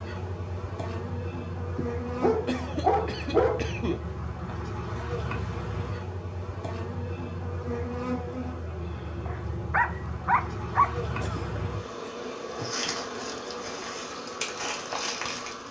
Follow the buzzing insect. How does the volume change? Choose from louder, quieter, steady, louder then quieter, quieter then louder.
steady.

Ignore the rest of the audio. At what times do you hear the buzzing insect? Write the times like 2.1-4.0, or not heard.
0.0-15.6.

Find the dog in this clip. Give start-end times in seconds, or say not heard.
1.8-4.0, 9.2-10.9.